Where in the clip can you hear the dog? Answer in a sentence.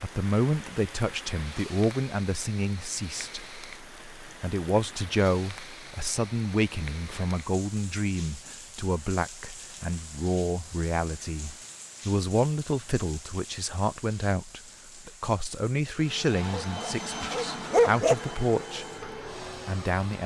You can hear the dog from 16.6 to 18.1 s.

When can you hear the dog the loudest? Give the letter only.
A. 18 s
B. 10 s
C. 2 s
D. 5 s
A.